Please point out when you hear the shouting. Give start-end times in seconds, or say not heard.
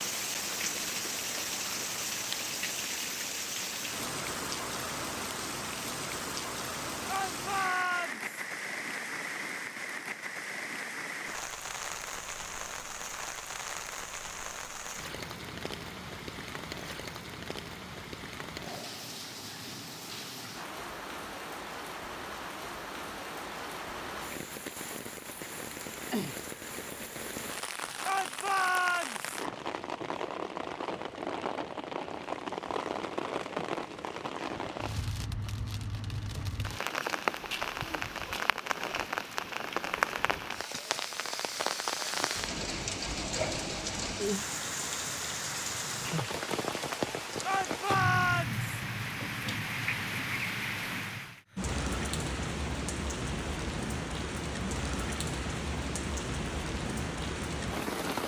7.0-8.2, 28.0-29.2, 47.4-48.6.